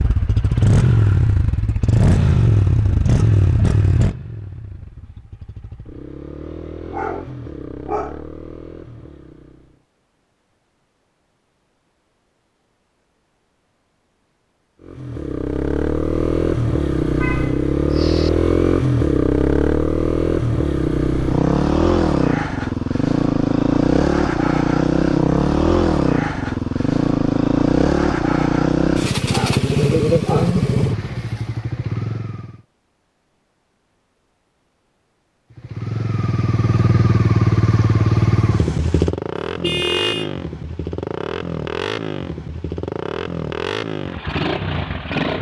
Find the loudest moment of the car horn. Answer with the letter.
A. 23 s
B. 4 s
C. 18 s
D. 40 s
D.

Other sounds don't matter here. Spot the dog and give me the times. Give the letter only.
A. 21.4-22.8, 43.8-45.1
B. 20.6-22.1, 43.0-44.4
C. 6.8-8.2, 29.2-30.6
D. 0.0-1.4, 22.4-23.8
C.